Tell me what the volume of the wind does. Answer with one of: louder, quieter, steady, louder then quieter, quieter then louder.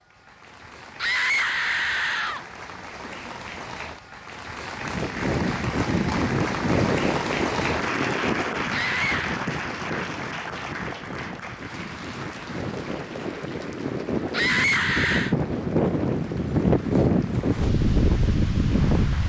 quieter then louder.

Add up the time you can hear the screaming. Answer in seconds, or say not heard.
3 s.